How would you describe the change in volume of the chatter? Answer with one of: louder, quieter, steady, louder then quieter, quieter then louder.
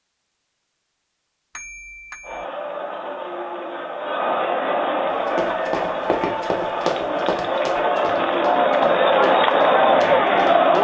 louder.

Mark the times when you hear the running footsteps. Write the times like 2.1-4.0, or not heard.
5.0-10.8.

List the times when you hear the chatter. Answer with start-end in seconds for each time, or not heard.
2.2-10.8.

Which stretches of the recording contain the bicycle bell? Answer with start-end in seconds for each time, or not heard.
1.6-2.5.